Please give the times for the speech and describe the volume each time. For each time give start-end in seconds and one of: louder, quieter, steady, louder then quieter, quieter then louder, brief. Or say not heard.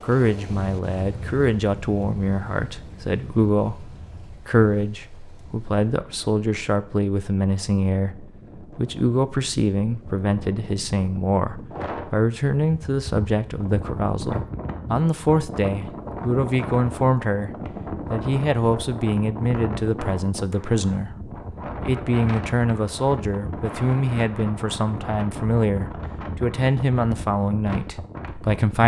0.0-17.5 steady
18.1-28.8 steady.